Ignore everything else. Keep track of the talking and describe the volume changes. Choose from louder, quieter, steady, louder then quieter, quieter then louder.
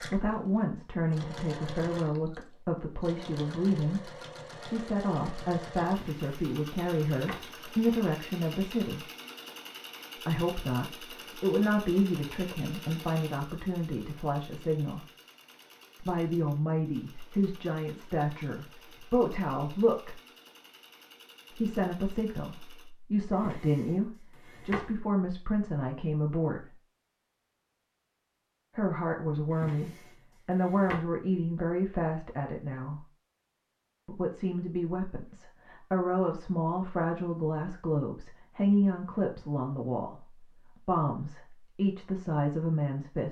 steady.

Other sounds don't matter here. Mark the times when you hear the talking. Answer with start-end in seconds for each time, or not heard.
0.0-9.1, 10.2-15.1, 16.0-20.2, 21.6-26.8, 28.8-33.0, 34.0-43.2.